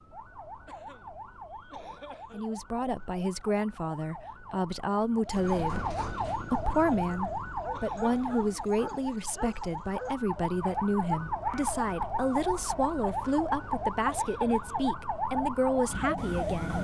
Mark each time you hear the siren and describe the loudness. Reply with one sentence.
You can hear the siren from 0.0 to 16.7 s, getting louder.